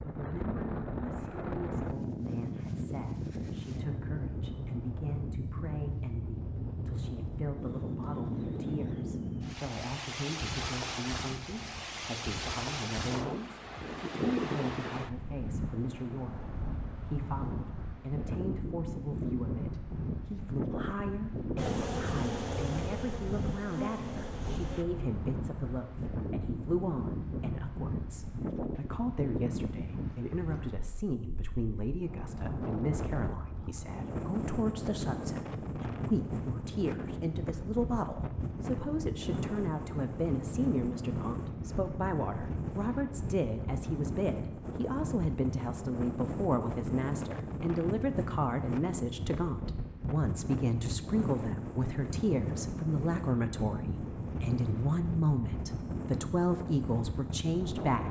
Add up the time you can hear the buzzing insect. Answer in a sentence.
You can hear the buzzing insect for 3 seconds altogether.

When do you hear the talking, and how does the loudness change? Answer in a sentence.
You can hear the talking from 0.0 to 58.0 s, getting louder.